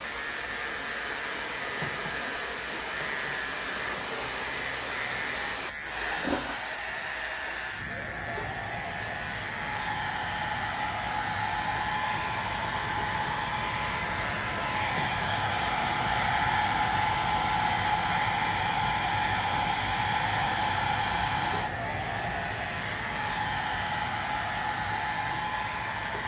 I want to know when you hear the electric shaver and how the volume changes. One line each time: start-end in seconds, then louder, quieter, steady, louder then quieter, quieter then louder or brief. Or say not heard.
0.0-26.2 steady.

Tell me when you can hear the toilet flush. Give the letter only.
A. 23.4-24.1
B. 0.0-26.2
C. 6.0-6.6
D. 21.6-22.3
C.